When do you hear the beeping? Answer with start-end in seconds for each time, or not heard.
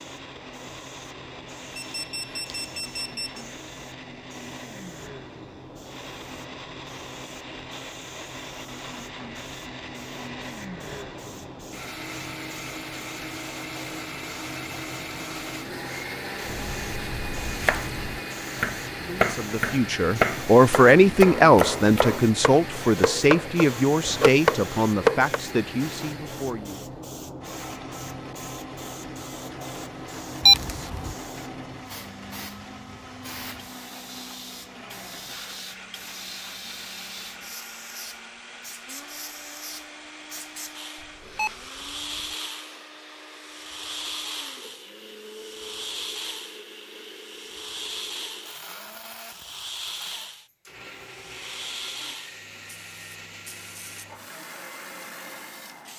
1.8-3.4, 30.4-31.1, 41.0-42.4.